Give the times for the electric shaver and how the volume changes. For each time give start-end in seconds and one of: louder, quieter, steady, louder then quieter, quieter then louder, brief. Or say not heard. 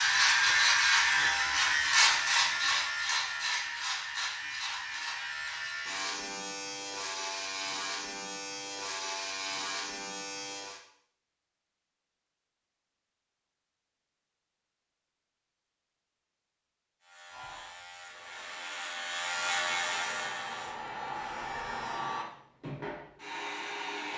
0.0-10.8 quieter
17.0-22.0 louder then quieter.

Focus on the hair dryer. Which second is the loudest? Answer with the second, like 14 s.
22 s.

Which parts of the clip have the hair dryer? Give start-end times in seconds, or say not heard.
17.2-24.1.